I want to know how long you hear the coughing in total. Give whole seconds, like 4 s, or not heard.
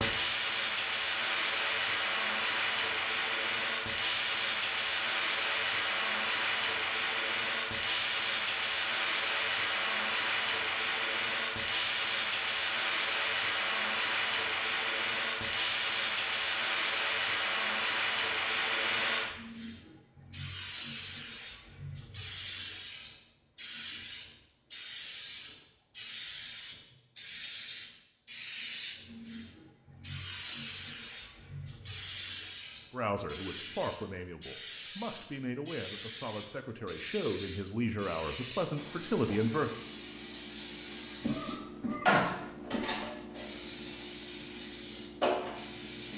2 s.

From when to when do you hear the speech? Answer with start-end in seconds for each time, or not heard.
32.9-39.7.